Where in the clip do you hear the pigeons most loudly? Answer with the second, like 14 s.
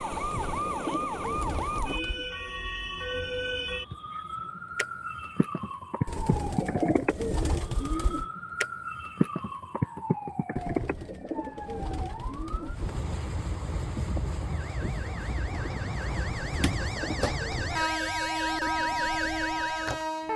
7 s.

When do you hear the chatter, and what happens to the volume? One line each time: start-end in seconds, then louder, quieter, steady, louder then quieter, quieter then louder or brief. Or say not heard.
not heard.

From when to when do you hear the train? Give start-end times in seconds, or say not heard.
12.7-20.3.